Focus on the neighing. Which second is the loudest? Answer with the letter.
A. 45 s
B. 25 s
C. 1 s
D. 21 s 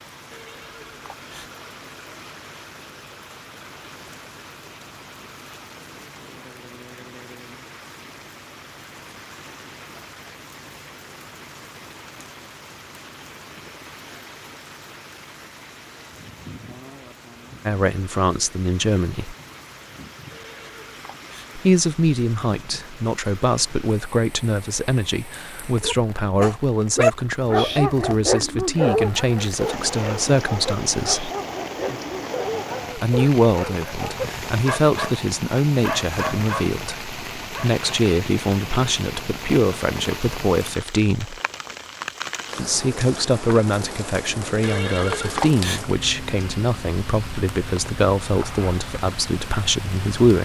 A.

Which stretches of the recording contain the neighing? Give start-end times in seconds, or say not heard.
0.3-1.5, 20.3-21.5, 44.6-45.8.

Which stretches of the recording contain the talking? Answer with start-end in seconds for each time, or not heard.
17.6-19.4, 21.6-31.3, 33.0-41.4, 42.5-50.3.